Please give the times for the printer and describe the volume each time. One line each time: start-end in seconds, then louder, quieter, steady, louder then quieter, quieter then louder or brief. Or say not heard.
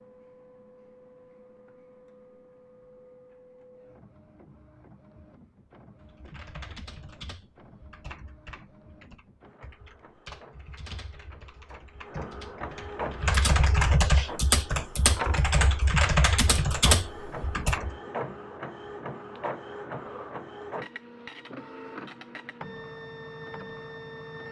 0.0-24.4 louder.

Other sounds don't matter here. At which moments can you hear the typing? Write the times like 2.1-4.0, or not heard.
6.0-17.9.